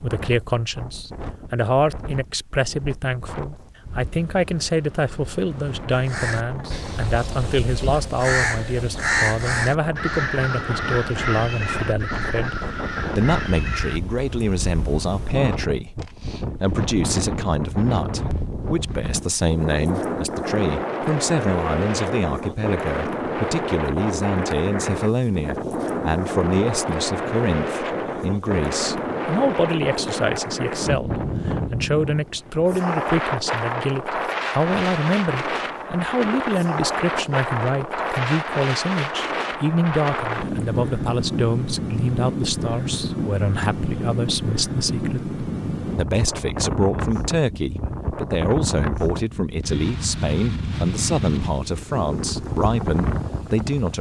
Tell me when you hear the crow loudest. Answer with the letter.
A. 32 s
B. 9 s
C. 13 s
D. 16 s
B.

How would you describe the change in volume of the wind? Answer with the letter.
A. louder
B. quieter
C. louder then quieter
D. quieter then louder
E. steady
A.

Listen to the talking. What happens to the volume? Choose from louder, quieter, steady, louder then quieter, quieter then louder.
steady.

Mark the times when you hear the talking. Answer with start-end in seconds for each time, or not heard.
0.0-53.9.